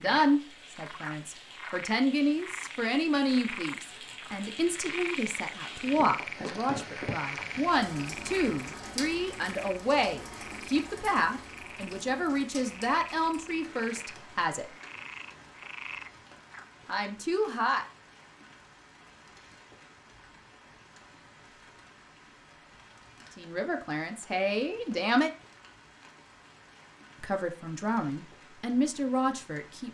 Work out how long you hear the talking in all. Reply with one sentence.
You can hear the talking for 20 seconds altogether.